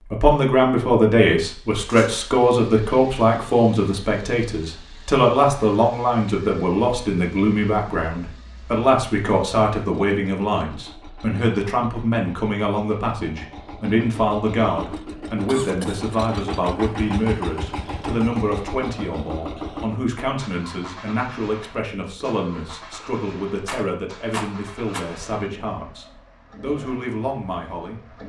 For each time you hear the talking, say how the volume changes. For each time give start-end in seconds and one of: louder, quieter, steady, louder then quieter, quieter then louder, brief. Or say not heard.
0.1-28.2 quieter.